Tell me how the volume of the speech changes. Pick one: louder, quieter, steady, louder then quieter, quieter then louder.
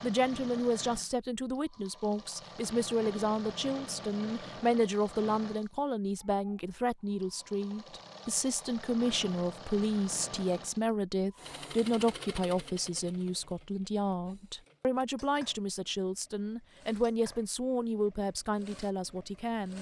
steady.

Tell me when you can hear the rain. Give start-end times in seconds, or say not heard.
not heard.